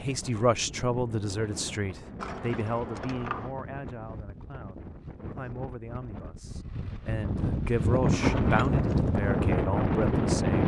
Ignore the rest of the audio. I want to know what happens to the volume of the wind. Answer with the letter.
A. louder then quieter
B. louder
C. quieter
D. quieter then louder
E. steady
B.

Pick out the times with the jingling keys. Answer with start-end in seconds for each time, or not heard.
2.1-3.5, 8.1-9.1.